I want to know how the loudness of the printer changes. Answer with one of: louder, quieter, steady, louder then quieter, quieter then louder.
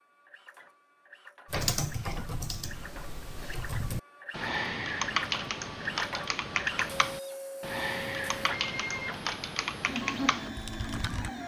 louder.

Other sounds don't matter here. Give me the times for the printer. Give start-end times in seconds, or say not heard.
0.0-11.4.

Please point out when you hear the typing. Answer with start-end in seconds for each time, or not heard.
1.5-11.3.